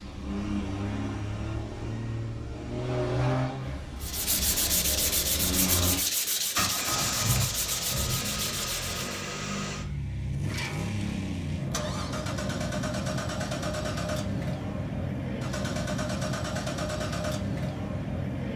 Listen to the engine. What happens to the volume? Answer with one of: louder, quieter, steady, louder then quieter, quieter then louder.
steady.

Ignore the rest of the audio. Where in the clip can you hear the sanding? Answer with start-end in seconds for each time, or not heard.
4.0-9.2.